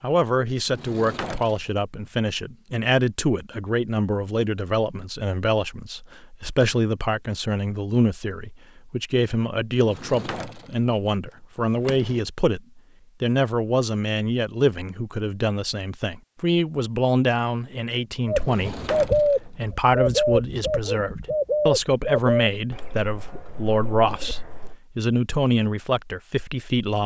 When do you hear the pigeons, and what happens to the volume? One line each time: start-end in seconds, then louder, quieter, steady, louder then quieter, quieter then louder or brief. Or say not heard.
18.2-24.8 quieter.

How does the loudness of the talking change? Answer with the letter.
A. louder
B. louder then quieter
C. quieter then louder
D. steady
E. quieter
D.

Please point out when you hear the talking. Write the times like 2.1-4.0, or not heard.
0.0-27.0.